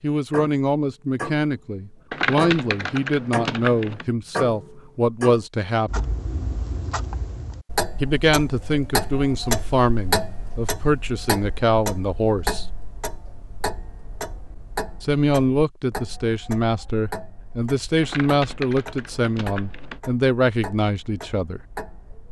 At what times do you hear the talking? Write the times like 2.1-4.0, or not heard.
0.0-6.0, 8.0-12.7, 15.0-21.6.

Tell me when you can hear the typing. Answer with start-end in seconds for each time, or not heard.
2.1-4.0, 18.0-20.0.